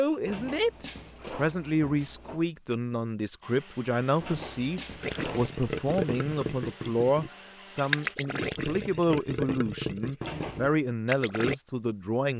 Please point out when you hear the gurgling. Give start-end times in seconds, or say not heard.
5.0-11.6.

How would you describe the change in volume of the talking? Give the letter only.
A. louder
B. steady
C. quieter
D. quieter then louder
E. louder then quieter
B.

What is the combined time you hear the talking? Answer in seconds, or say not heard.
12 s.